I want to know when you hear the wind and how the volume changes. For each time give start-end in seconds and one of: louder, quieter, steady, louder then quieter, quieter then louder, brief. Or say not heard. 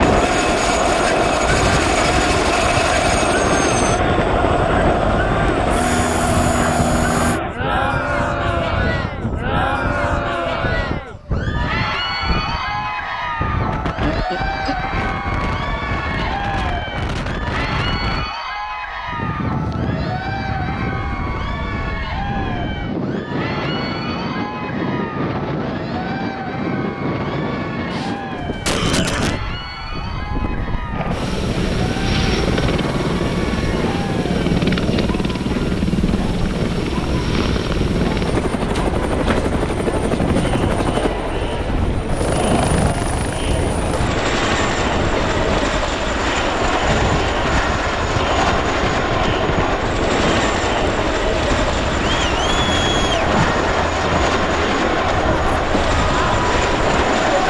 0.0-57.4 steady.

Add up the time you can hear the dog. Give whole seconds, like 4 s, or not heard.
not heard.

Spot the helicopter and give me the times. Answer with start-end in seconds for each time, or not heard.
0.0-7.4, 30.9-57.4.